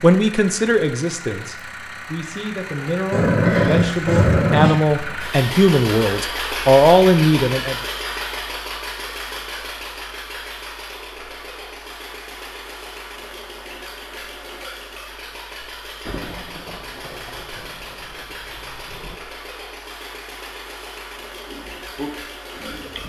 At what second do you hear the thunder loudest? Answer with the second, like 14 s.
16 s.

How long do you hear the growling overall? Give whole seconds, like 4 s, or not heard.
2 s.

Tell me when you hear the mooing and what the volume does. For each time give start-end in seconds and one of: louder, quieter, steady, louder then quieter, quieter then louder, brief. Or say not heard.
not heard.